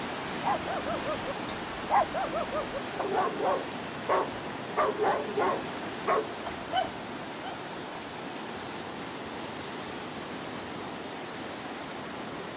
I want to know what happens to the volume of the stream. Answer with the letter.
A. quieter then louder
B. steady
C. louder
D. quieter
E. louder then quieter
B.